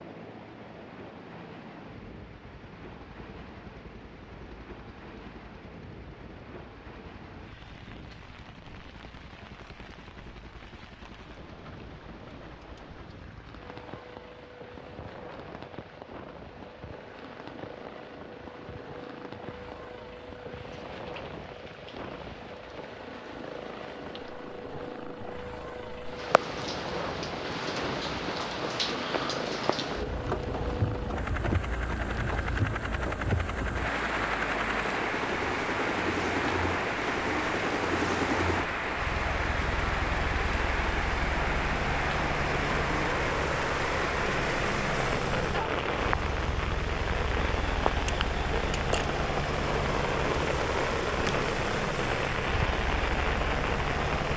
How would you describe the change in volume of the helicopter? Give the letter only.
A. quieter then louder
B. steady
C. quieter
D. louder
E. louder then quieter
D.